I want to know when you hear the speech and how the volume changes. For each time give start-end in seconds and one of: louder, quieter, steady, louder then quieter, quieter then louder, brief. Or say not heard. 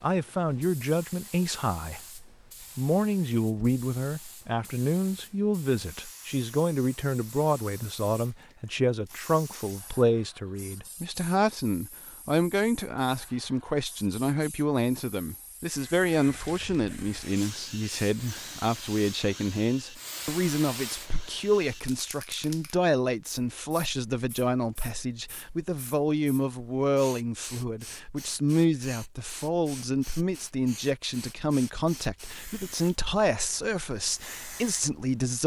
0.0-35.4 steady.